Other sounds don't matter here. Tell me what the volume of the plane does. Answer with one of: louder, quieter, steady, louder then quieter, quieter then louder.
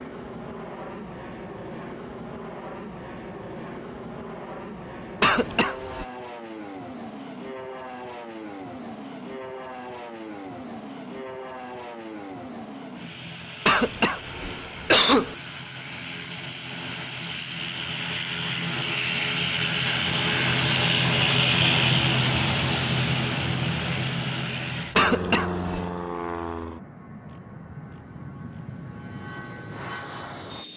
louder then quieter.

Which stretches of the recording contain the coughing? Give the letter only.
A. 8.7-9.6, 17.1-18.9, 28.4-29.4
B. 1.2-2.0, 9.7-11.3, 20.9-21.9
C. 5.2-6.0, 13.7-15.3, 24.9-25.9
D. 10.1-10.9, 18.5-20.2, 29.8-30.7
C.